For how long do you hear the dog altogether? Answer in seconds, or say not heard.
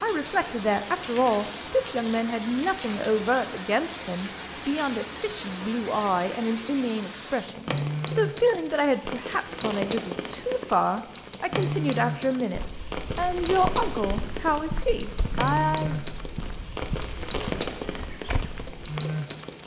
not heard.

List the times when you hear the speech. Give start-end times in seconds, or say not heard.
0.0-16.0.